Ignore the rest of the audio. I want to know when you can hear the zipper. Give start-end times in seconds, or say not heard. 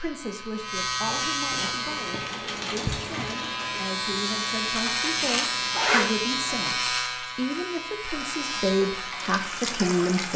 1.1-3.0, 5.7-6.7.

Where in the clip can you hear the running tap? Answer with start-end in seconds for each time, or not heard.
1.8-5.9, 8.1-10.3.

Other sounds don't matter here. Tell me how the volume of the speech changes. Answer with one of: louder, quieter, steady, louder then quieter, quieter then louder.
louder.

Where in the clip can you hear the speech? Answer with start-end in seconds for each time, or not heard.
0.0-10.3.